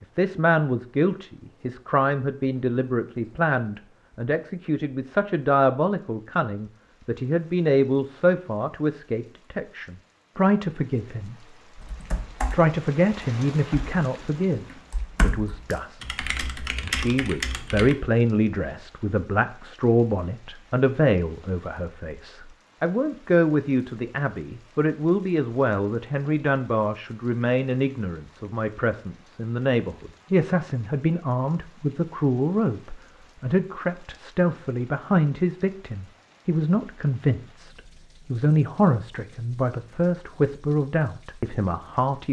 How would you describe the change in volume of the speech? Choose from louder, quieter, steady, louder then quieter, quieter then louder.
steady.